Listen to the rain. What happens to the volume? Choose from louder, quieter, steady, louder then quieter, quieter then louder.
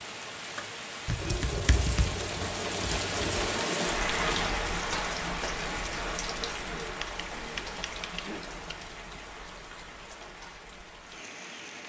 louder then quieter.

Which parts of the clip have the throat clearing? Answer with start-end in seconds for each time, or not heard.
1.1-1.9, 6.3-8.4.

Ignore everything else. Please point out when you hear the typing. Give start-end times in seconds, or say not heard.
1.1-3.5, 7.0-8.8.